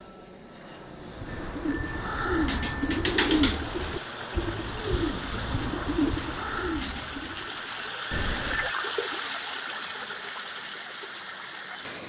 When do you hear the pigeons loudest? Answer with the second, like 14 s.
3 s.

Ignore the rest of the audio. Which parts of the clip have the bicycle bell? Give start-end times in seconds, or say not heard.
1.2-3.0, 8.1-8.8.